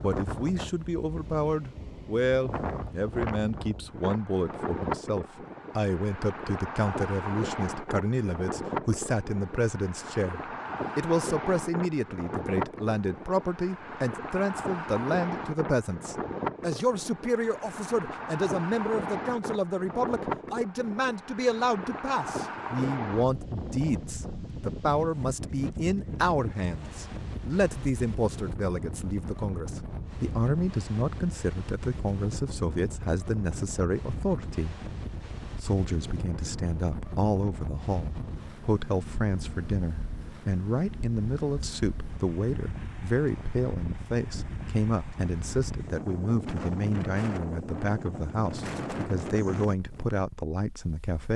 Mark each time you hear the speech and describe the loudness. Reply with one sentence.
You can hear the speech from 0.0 to 51.3 s, at a steady volume.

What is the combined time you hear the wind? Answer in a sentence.
You can hear the wind for 51 seconds altogether.